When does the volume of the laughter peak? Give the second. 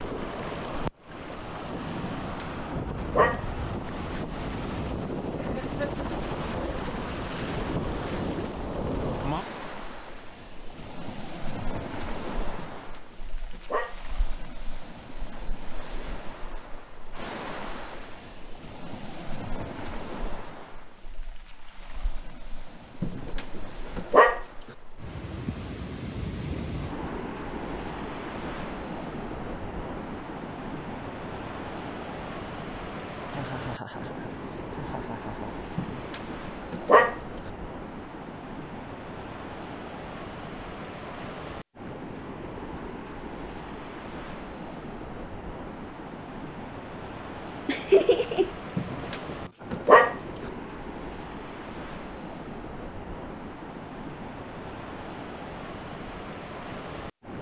48 s.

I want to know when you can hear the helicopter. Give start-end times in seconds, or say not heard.
not heard.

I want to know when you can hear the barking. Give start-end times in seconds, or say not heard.
2.0-3.4, 12.6-13.9, 23.0-24.4, 35.8-37.1, 48.8-50.1.